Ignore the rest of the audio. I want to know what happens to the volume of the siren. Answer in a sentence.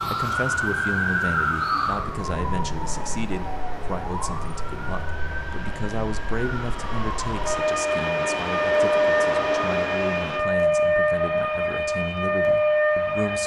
The volume of the siren goes down, then up.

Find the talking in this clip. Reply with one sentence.
You can hear the talking from 0.1 to 13.4 s.